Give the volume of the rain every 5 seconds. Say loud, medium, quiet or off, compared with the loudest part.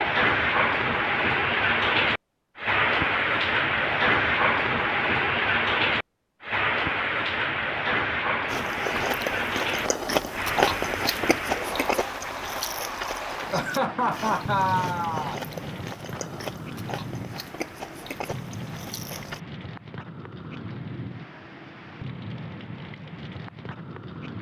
loud, loud, medium, quiet, quiet.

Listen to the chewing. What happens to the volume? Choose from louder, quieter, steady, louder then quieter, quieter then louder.
quieter.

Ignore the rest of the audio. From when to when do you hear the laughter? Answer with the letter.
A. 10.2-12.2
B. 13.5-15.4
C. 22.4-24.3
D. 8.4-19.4
B.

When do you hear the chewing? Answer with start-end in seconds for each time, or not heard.
8.4-19.4.